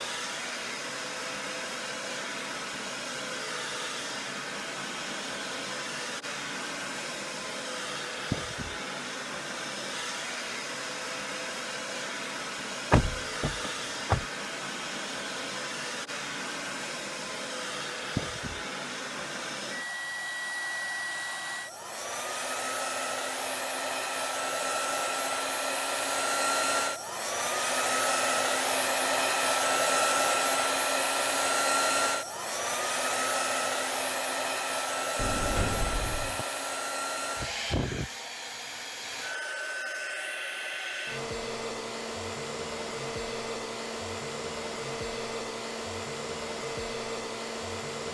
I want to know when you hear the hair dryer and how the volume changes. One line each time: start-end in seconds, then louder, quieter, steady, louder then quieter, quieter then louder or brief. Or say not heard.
0.0-48.0 louder then quieter.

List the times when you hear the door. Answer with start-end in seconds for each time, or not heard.
12.9-14.2, 35.1-36.5.